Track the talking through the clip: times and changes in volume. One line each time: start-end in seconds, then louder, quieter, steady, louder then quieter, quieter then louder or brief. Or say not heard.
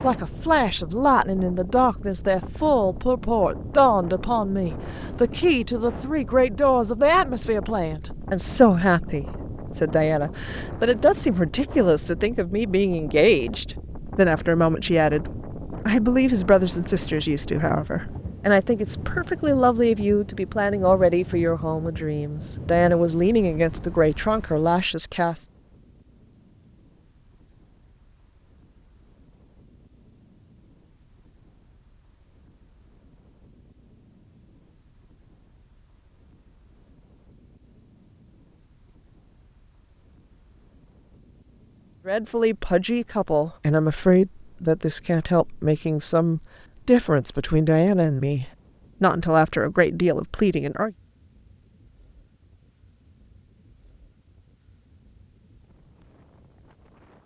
0.0-25.4 steady
42.0-50.9 steady.